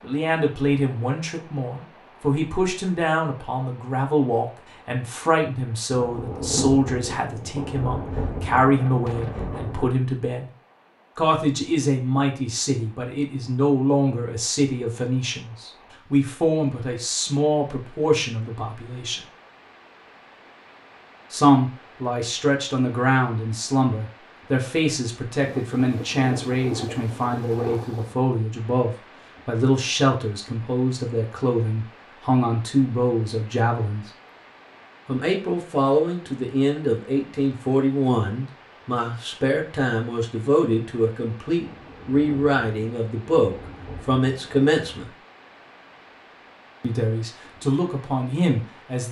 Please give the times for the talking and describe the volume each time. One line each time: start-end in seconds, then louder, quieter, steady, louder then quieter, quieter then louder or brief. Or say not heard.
0.0-10.5 steady
11.2-19.2 steady
21.3-34.0 steady
35.0-45.1 steady
46.8-49.0 brief.